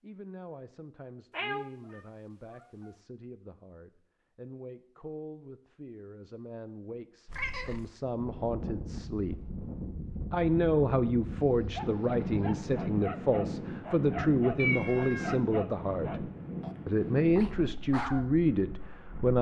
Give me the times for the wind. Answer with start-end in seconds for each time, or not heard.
8.1-19.3.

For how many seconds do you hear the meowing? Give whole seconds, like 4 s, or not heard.
3 s.